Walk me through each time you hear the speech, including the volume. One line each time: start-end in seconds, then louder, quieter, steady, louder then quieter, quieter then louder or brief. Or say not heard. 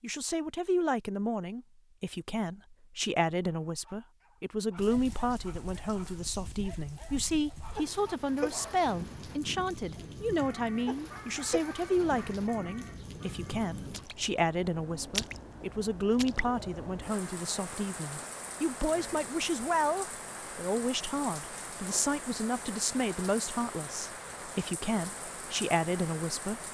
0.0-26.6 steady.